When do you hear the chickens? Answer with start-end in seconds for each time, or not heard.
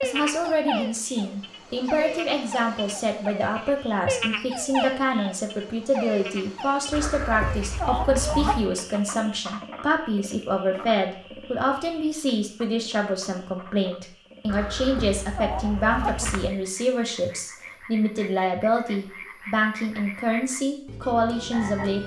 6.9-8.7, 14.4-16.5.